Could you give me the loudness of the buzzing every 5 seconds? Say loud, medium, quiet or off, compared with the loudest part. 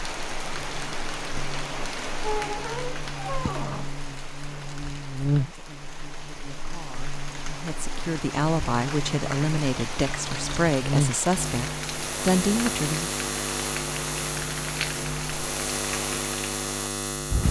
medium, loud, loud, loud.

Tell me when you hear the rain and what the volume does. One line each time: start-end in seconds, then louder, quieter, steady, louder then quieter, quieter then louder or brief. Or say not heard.
0.0-17.4 quieter then louder.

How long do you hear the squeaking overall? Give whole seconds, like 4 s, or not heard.
2 s.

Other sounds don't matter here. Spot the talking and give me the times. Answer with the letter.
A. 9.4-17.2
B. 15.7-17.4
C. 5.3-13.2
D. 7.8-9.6
C.